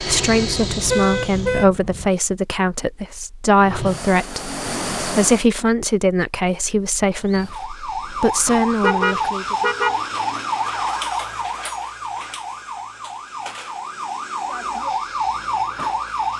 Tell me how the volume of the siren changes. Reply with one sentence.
The loudness of the siren goes down, then up.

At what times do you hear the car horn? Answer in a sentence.
You can hear the car horn from 0.1 to 2.1 s and from 8.6 to 10.0 s.